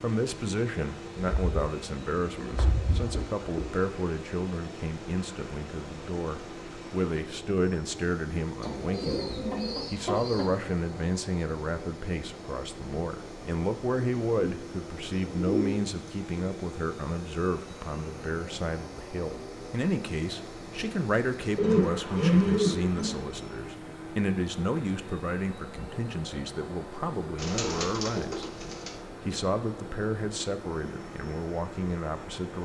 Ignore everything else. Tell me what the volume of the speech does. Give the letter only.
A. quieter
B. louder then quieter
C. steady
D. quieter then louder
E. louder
C.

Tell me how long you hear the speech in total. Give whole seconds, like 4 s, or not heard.
32 s.